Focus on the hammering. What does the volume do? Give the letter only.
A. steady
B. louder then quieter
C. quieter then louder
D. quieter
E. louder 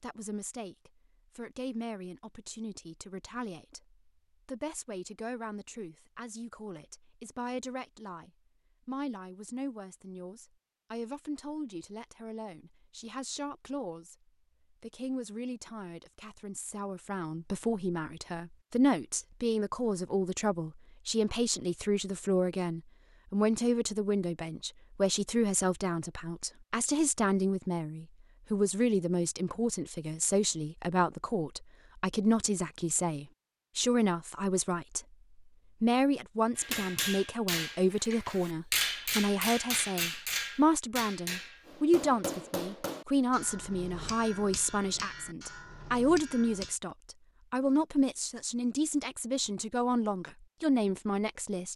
D.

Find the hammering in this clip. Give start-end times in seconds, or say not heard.
36.5-46.8.